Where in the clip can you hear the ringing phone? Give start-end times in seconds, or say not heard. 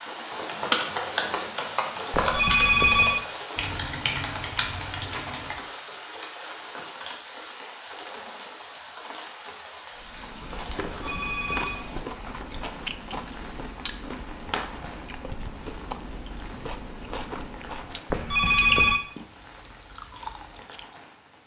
2.1-3.2, 10.8-11.8, 18.1-19.0.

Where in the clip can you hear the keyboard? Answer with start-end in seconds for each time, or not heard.
0.5-5.6.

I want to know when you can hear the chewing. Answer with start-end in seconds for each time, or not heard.
9.9-20.9.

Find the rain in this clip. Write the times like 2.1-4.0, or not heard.
0.0-21.4.